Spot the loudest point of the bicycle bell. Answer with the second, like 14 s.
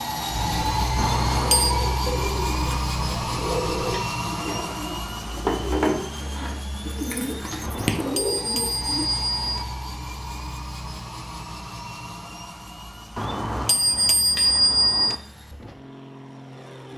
15 s.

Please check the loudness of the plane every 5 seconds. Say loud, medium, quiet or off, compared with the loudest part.
loud, medium, quiet, quiet.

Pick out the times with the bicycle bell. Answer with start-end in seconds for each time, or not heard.
0.9-1.8, 7.6-9.7, 13.2-15.2.